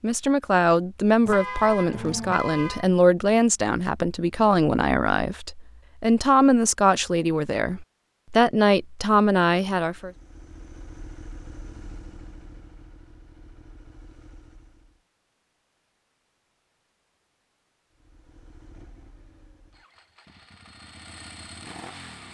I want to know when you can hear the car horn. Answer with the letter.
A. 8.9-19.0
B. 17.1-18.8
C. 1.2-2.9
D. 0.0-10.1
C.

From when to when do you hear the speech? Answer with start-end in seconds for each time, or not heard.
0.0-10.1.